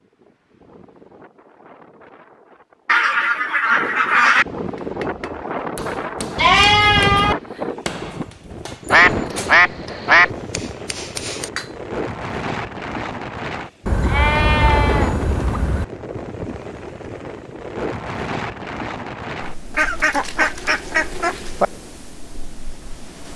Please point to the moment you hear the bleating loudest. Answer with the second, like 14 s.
7 s.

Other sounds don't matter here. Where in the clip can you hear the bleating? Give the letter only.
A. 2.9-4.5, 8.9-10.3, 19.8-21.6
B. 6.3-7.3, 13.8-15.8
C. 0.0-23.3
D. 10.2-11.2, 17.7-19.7
B.